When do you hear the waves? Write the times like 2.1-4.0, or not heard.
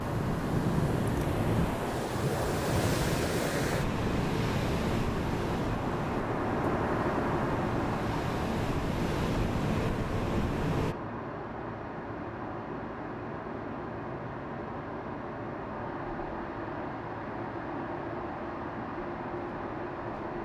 0.0-10.9.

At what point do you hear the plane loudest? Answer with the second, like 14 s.
7 s.